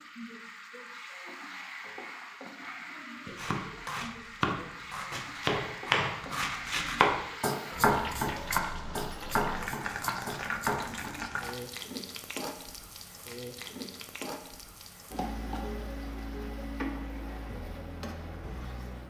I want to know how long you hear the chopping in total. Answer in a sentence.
The chopping can be heard for 8 seconds in total.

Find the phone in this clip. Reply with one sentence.
The phone can't be heard in this clip.